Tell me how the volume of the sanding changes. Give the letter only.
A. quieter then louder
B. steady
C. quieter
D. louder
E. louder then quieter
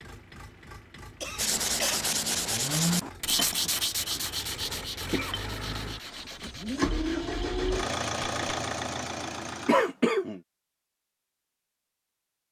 C.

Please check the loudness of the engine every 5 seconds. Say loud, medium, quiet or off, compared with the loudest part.
quiet, loud, off.